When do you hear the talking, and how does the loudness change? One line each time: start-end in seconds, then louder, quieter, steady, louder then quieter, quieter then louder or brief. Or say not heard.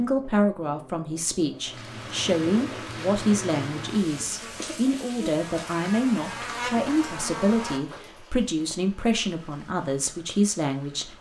0.0-11.1 steady.